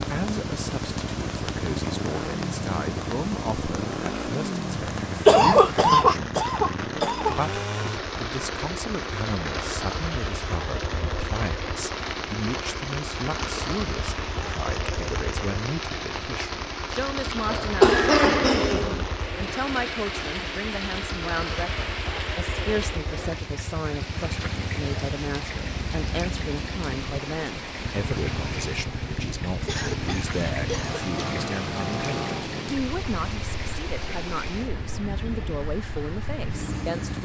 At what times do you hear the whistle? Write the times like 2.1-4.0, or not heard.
not heard.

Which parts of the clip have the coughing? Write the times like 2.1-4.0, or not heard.
5.2-7.3, 17.5-19.1, 29.6-31.2.